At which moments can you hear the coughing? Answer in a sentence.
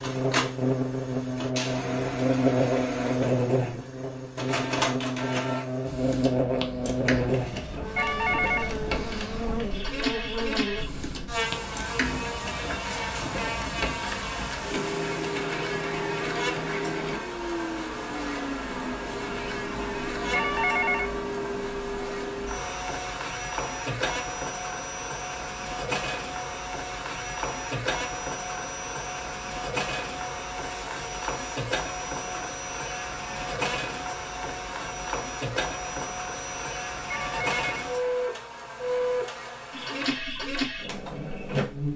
The coughing can't be heard in this clip.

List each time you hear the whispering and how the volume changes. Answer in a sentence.
You can't hear the whispering here.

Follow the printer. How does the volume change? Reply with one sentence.
The volume of the printer stays about the same.